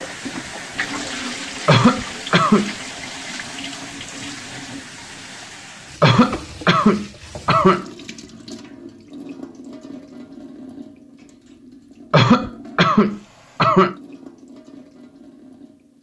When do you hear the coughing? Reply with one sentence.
The coughing can be heard from 1.6 to 2.8 s, from 6.0 to 7.8 s and from 12.1 to 13.9 s.